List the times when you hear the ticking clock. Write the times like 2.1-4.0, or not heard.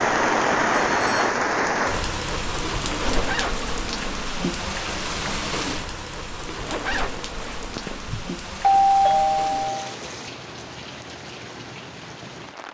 not heard.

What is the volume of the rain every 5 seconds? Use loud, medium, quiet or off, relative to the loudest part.
loud, medium, quiet.